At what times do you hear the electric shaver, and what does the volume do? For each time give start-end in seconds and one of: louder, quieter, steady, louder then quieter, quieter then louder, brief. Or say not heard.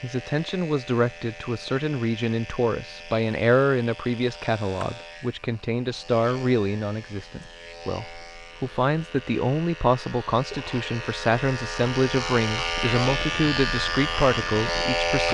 0.0-15.2 louder.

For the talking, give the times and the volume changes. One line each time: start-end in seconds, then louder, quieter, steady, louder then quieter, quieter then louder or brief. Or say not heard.
0.0-15.2 steady.